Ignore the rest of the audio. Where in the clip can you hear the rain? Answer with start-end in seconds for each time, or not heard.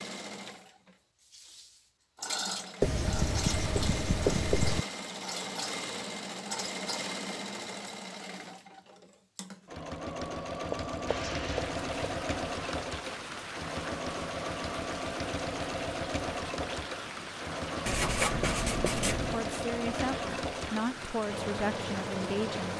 11.1-22.7.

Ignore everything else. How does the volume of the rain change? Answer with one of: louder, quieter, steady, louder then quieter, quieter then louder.
steady.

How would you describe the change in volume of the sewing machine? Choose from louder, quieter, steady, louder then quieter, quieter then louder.
steady.